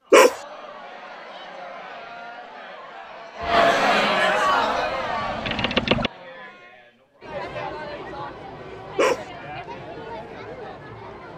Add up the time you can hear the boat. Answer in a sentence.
The boat can be heard for 2 seconds in total.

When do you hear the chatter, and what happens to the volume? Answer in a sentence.
The chatter can be heard from 0.0 to 11.3 s, getting louder then quieter.